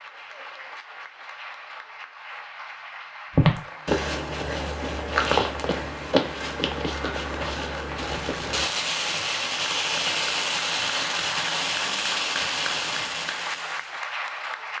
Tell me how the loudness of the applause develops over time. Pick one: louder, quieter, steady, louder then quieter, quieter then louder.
louder.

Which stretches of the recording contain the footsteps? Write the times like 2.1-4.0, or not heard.
3.3-8.7.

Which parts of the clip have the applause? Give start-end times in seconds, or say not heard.
0.0-14.7.